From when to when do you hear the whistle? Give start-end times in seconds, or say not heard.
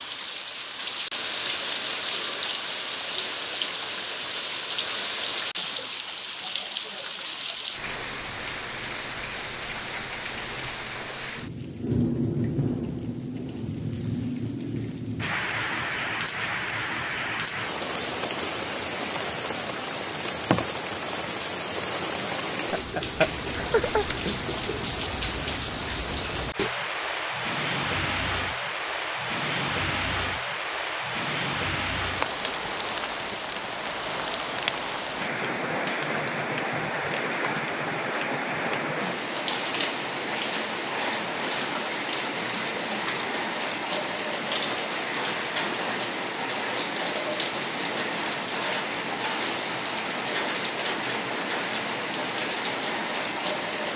not heard.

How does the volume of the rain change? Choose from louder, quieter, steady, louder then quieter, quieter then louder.
steady.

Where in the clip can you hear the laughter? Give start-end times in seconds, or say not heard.
22.7-24.4.